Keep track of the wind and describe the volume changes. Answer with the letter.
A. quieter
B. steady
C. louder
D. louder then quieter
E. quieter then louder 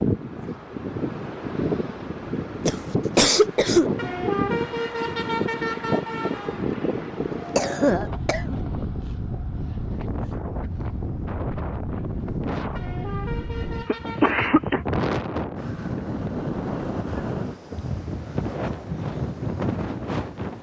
B.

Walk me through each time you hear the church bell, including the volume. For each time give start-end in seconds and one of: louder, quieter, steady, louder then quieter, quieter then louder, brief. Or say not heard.
not heard.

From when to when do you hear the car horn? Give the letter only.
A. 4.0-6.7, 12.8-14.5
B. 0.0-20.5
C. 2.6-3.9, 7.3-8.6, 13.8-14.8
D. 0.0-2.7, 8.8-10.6
A.